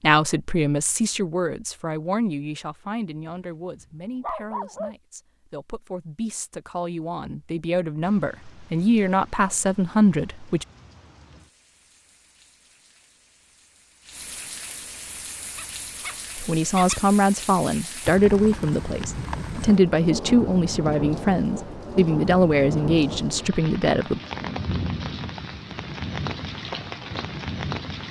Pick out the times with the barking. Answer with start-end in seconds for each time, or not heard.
3.3-5.0, 15.6-17.1.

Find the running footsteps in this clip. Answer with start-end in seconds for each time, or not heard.
not heard.